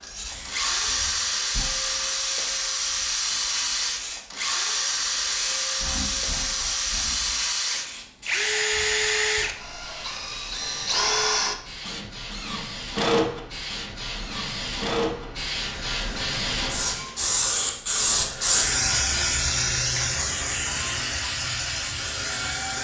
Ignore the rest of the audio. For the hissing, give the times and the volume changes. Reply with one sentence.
You can hear the hissing from 0.0 to 22.7 s, getting louder.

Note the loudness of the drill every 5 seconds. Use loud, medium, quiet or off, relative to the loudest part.
loud, loud, loud, medium, medium.